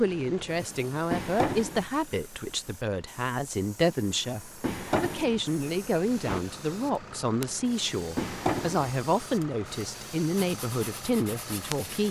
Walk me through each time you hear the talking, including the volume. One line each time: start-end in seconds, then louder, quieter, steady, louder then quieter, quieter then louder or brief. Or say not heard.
0.0-12.0 steady.